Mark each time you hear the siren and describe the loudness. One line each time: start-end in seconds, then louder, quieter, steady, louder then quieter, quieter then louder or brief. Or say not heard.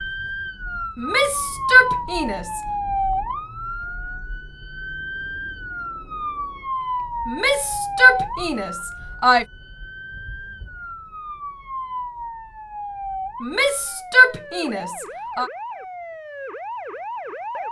0.0-17.6 quieter.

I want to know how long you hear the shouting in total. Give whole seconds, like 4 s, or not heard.
6 s.